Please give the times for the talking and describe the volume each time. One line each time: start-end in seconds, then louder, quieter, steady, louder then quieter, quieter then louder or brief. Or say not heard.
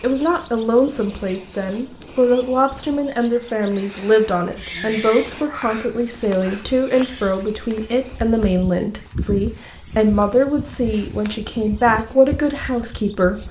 0.0-13.4 steady.